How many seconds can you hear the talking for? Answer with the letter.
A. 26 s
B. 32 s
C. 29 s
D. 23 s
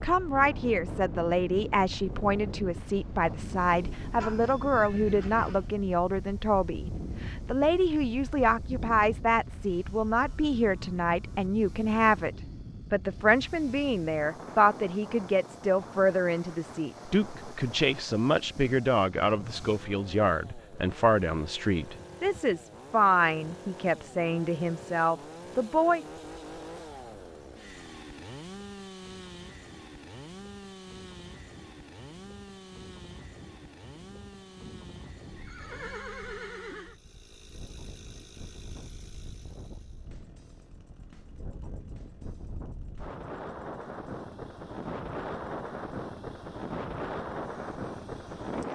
A.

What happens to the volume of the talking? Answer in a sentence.
The loudness of the talking stays about the same.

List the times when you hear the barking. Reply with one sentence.
The barking can't be heard in this clip.